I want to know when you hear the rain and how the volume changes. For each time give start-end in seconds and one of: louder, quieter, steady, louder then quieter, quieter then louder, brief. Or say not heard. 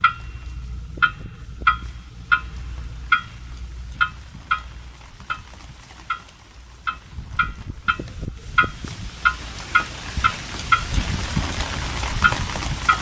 0.0-12.9 louder.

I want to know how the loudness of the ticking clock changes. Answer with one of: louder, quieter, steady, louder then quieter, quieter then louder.
quieter then louder.